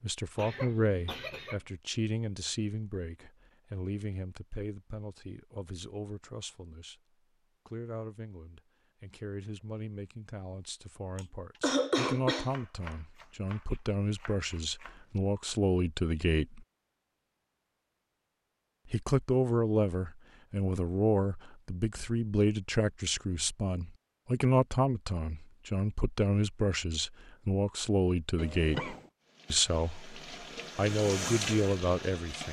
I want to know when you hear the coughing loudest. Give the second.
12 s.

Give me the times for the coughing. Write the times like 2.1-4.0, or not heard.
0.3-1.6, 11.2-12.6, 28.4-29.1.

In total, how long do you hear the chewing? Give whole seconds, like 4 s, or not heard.
not heard.